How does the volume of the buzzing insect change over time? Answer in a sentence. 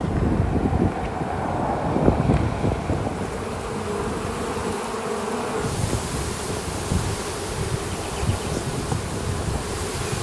The loudness of the buzzing insect goes up.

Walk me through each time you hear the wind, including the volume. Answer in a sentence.
The wind can be heard from 0.0 to 10.1 s, getting quieter.